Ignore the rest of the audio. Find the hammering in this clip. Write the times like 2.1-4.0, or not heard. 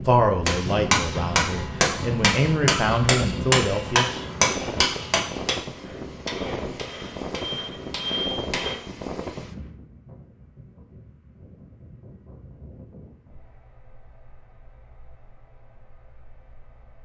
0.5-8.8.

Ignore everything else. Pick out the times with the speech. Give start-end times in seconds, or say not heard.
0.0-4.0.